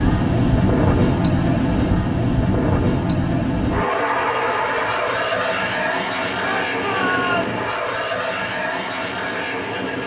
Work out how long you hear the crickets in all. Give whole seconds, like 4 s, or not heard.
not heard.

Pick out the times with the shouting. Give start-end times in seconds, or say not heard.
6.4-7.6.